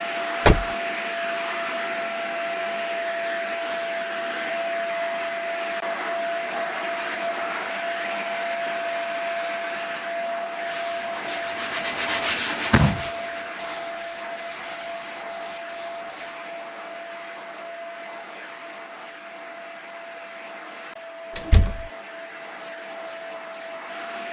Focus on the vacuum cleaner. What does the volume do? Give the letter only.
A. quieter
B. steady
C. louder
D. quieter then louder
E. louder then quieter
A.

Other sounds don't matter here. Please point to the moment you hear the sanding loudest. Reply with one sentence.
The volume of the sanding peaks at 12 seconds.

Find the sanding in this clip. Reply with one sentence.
You can hear the sanding from 10.7 to 16.4 s.